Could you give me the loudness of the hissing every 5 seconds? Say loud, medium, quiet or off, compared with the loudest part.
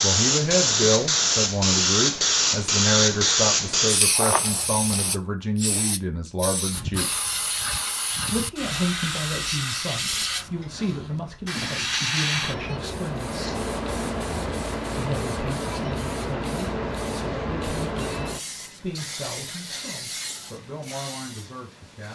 loud, medium, medium, medium, quiet.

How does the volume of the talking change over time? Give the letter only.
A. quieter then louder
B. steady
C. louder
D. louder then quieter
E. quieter
E.